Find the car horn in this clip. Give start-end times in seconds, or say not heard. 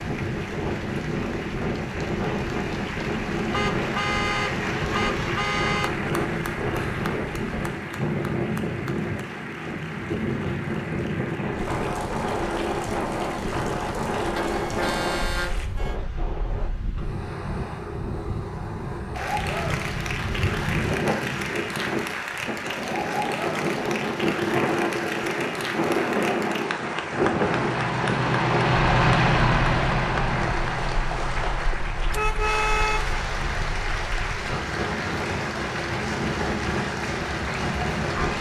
3.5-6.0, 14.3-15.9, 32.1-33.1.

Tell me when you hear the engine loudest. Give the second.
29 s.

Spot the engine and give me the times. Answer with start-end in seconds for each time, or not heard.
27.4-33.5.